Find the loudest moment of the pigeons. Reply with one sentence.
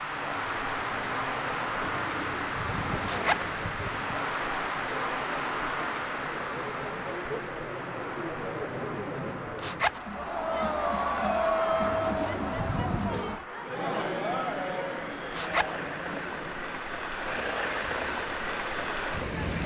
The loudest moment of the pigeons is at 13 seconds.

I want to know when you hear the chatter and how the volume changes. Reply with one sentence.
The chatter can be heard from 0.0 to 19.6 s, getting louder then quieter.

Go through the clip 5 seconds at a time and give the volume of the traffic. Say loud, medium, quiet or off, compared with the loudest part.
loud, loud, medium, loud.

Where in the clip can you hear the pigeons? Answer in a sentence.
The pigeons can be heard from 2.0 to 4.2 s and from 11.8 to 13.4 s.